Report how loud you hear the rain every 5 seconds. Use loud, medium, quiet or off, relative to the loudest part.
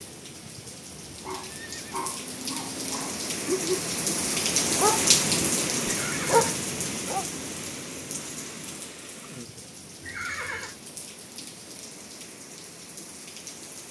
loud, loud, quiet.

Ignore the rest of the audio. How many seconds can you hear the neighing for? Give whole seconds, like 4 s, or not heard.
3 s.